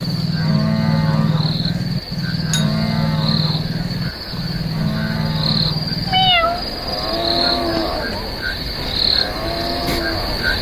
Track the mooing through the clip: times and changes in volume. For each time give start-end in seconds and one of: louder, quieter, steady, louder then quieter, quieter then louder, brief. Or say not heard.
0.0-10.5 quieter.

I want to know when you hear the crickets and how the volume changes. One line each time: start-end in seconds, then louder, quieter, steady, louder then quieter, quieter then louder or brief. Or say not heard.
0.0-10.5 louder.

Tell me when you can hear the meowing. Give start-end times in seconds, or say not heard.
2.5-3.0, 6.0-6.7.